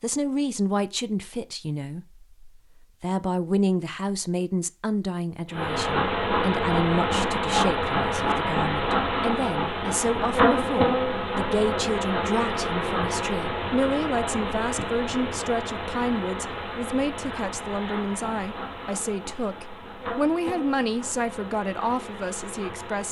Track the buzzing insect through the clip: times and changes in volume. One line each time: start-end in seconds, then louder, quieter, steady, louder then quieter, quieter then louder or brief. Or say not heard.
5.5-23.0 quieter.